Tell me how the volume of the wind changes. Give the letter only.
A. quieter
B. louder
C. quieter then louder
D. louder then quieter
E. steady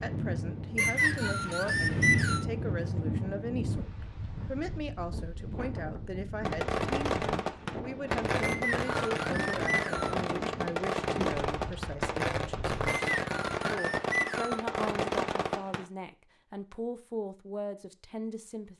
A.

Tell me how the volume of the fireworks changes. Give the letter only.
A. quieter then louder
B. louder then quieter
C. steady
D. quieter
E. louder
C.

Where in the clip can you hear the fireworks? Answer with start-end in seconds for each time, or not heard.
6.5-15.8.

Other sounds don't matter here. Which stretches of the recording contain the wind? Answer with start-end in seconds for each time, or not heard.
0.0-12.9.